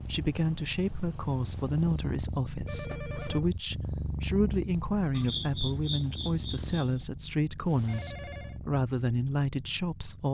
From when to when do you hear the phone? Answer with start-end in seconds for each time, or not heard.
2.6-3.4, 7.8-8.6.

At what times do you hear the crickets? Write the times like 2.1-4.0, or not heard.
0.0-7.0.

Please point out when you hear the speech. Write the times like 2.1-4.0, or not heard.
0.1-10.2.